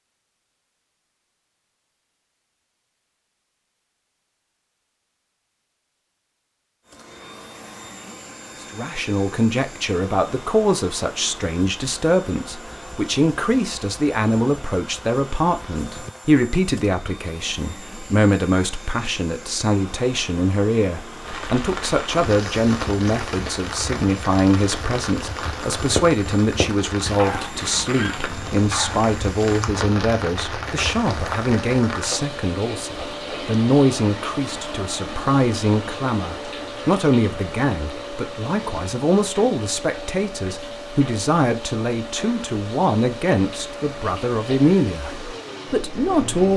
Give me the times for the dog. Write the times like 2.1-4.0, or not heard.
27.1-29.1.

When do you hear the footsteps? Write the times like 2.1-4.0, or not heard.
not heard.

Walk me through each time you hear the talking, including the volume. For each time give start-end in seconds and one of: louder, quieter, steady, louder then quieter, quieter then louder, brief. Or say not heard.
8.7-46.5 steady.